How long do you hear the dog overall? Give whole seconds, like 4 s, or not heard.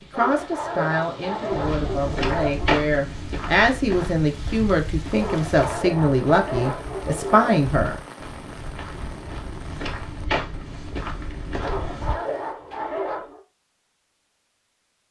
7 s.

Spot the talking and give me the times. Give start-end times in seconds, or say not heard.
0.1-8.0.